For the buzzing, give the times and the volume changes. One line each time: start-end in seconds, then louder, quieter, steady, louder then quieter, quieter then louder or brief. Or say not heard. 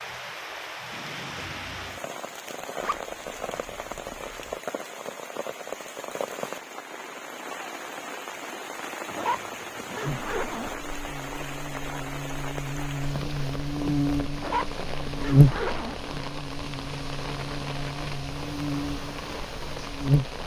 10.0-20.4 louder then quieter.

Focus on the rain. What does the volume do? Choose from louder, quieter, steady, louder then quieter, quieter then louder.
steady.